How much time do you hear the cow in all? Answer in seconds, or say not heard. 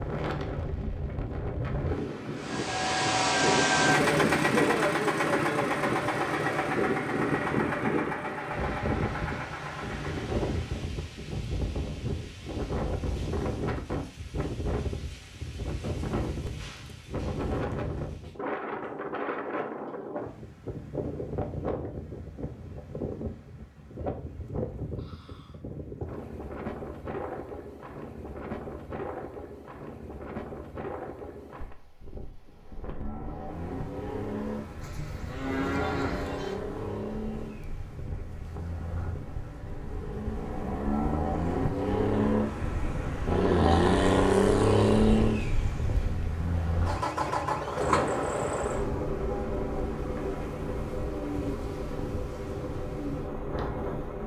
2 s.